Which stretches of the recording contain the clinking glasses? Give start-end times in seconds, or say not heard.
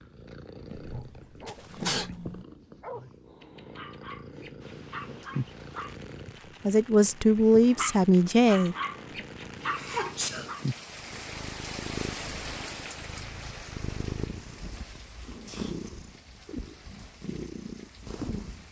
not heard.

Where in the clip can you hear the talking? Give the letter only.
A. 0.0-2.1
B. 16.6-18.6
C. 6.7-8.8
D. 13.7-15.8
C.